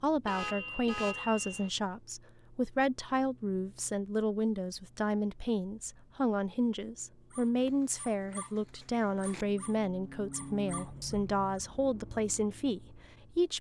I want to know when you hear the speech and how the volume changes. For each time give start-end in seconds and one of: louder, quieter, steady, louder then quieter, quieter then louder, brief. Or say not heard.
0.0-13.5 steady.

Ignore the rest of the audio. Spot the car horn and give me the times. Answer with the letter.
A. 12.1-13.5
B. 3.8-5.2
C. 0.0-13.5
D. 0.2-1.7
D.